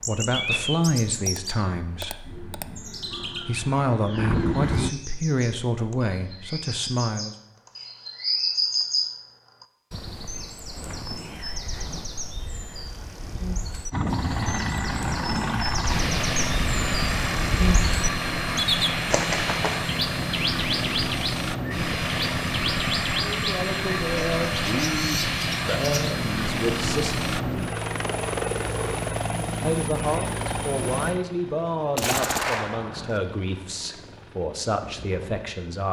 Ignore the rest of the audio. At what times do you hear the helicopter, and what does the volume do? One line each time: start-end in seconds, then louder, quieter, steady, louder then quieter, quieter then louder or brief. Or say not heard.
2.2-4.9 brief
13.9-35.8 quieter.